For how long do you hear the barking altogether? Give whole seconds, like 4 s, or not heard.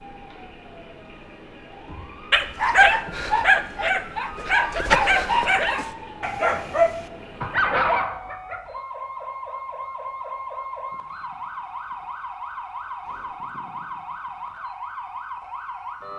6 s.